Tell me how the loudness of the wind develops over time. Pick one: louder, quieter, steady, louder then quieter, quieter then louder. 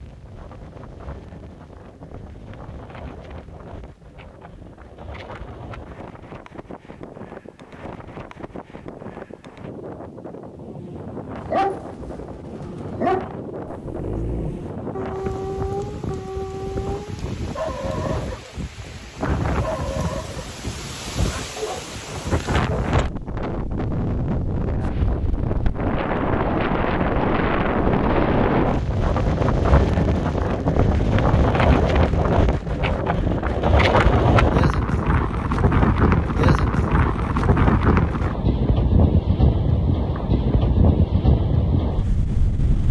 louder.